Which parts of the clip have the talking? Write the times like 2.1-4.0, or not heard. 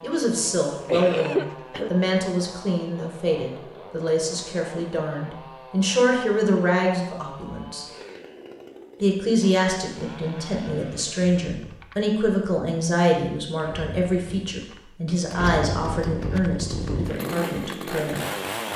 0.0-7.8, 9.0-18.2.